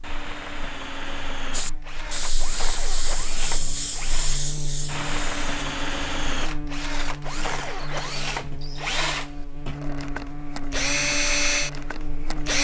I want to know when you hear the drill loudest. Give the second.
11 s.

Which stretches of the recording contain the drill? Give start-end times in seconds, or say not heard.
0.0-12.5.